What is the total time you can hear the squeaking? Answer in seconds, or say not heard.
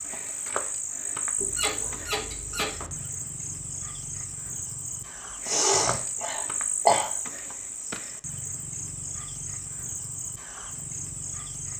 2 s.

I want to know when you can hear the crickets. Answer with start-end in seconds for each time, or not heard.
0.0-11.7.